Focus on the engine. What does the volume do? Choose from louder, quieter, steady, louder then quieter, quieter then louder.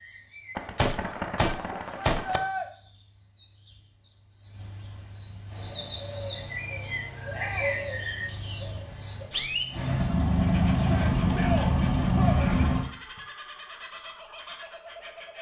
louder.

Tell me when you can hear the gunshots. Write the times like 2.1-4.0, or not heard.
0.6-2.4.